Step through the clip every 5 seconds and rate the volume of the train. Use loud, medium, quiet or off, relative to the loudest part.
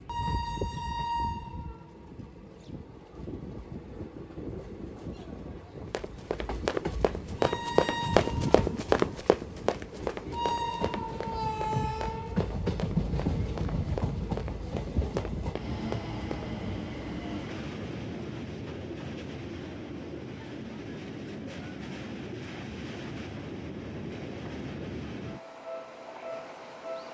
medium, medium, loud, medium, medium, medium.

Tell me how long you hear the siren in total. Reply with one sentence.
You can't hear the siren here.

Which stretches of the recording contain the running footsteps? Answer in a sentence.
The running footsteps can be heard from 5.9 to 16.6 s.